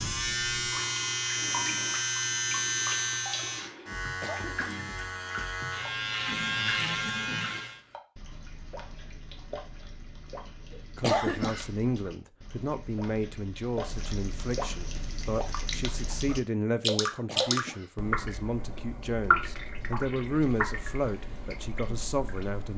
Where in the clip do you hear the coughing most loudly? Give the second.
11 s.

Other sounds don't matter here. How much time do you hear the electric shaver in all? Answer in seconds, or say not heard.
8 s.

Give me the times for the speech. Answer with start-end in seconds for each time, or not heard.
10.9-22.7.